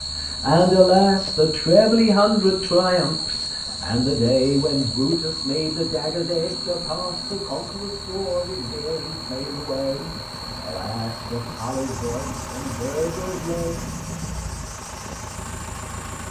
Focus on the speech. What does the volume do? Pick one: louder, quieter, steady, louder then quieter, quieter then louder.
quieter.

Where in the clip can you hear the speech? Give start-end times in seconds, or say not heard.
0.2-13.8.